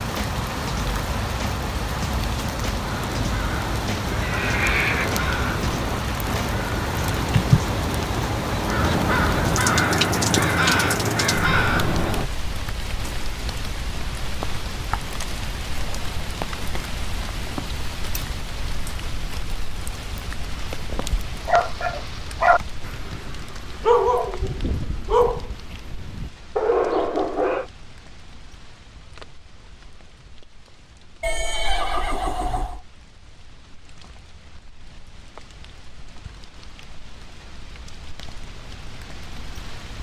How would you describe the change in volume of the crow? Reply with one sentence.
The loudness of the crow goes up.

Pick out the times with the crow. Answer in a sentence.
The crow can be heard from 2.8 to 12.2 s.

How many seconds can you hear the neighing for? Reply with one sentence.
You can hear the neighing for 3 seconds altogether.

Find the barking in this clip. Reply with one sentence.
The barking can be heard from 21.4 to 27.6 s.